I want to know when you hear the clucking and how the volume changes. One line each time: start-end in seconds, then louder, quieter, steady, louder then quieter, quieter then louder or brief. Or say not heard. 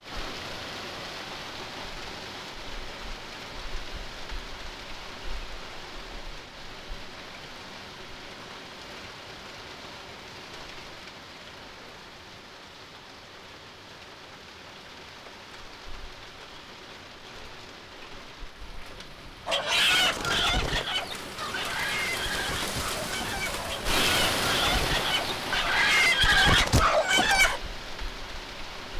19.4-27.6 quieter then louder.